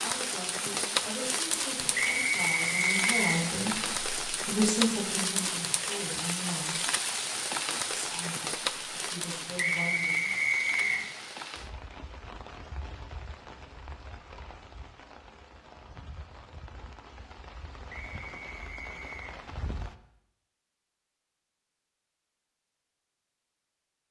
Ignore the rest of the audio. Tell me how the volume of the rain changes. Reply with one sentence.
The volume of the rain goes down.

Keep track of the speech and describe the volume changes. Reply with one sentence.
The volume of the speech goes up, then down.